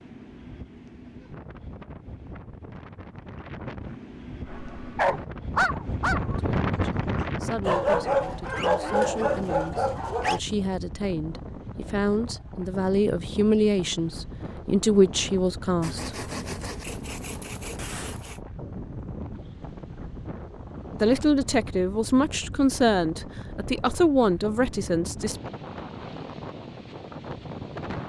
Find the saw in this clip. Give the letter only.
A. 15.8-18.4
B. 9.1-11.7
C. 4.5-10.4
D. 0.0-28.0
A.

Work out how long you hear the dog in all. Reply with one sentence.
The dog can be heard for 6 seconds in total.